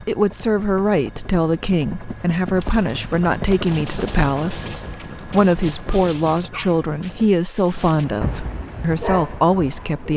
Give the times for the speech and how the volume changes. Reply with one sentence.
You can hear the speech from 0.0 to 10.1 s, at a steady volume.